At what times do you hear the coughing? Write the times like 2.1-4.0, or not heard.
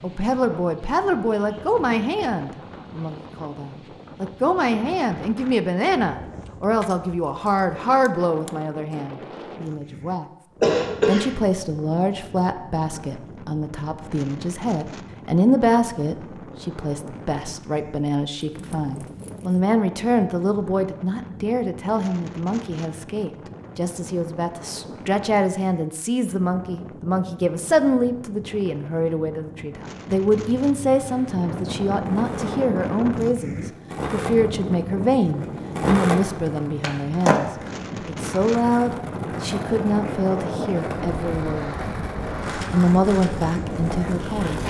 10.6-11.2.